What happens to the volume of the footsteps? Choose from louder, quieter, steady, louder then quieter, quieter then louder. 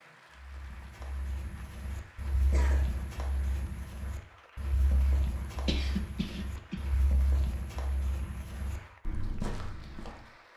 louder.